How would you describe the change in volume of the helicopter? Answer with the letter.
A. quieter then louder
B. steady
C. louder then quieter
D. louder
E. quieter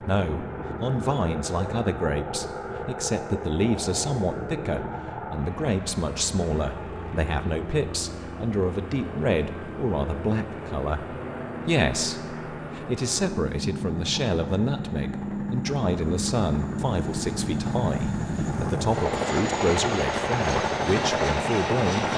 D.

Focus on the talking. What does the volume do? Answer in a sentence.
The volume of the talking stays about the same.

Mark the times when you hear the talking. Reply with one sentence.
The talking can be heard from 0.0 to 22.1 s.